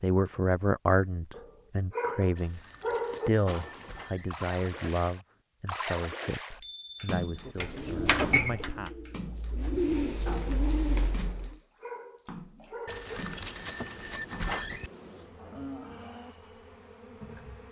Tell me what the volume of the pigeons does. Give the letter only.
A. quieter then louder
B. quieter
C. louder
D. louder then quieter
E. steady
A.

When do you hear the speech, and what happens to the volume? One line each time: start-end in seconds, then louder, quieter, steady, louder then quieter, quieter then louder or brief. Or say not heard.
0.0-8.9 quieter.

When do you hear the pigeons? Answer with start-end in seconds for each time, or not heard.
7.5-11.6.